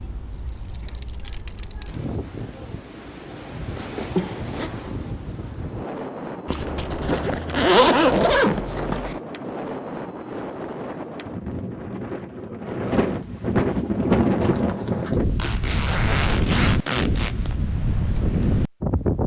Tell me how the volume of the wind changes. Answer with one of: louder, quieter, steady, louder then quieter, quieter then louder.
louder.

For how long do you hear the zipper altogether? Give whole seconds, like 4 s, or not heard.
6 s.